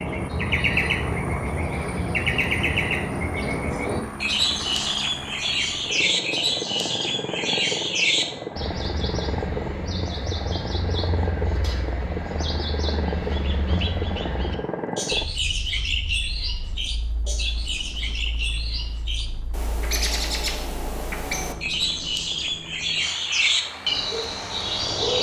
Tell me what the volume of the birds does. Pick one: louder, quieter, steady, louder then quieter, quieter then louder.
quieter then louder.